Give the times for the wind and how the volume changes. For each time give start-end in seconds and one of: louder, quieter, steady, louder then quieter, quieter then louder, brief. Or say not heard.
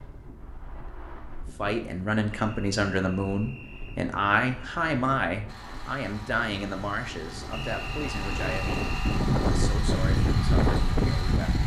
0.0-11.6 louder.